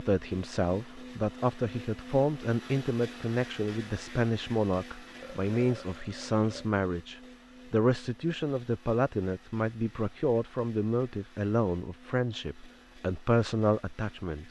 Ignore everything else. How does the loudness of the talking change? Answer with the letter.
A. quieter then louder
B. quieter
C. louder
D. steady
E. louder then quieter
D.